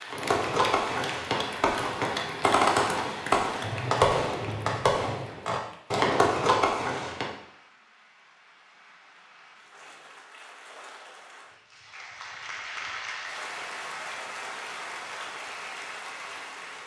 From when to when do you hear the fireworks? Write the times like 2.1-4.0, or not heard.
0.1-7.3.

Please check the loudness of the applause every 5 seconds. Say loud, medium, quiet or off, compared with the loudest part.
loud, quiet, loud, loud.